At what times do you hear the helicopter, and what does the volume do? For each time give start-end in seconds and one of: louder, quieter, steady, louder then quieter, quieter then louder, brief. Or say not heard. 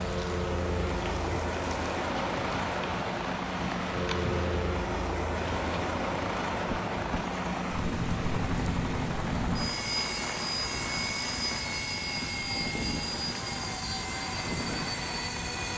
0.0-15.7 steady.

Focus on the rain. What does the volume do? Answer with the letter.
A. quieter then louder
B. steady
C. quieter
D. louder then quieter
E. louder
B.